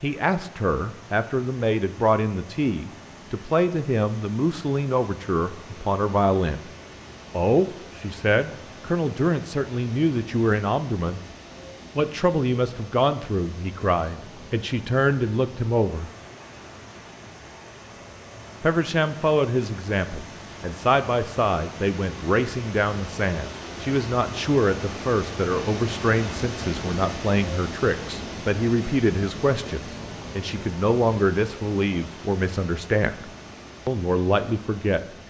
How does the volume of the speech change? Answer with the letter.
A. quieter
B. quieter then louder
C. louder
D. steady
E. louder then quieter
D.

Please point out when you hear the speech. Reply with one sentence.
The speech can be heard from 0.0 to 6.6 s, from 7.3 to 11.2 s, from 11.9 to 16.1 s and from 18.6 to 35.0 s.